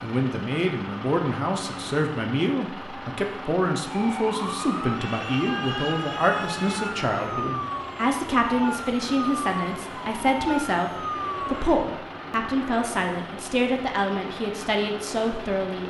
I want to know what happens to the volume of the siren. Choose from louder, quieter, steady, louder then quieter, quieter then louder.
steady.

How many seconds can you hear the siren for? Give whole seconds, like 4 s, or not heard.
8 s.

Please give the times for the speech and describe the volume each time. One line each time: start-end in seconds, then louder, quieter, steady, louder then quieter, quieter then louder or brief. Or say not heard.
0.0-15.8 steady.